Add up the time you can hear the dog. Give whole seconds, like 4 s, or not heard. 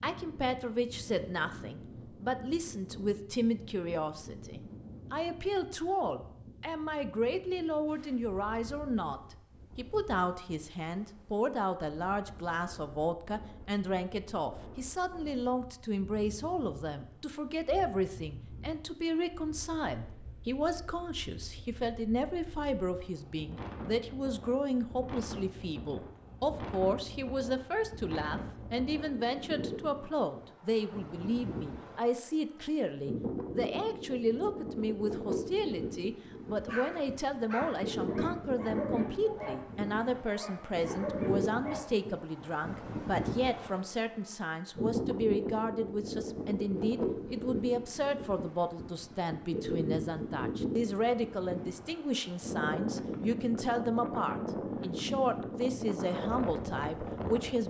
5 s.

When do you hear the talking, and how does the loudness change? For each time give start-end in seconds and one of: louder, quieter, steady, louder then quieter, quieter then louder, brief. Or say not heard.
0.0-57.6 steady.